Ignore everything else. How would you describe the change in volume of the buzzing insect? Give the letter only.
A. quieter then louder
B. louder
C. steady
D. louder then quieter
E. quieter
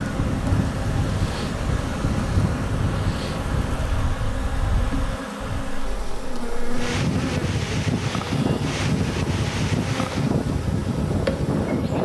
C.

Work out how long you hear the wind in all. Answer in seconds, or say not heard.
12 s.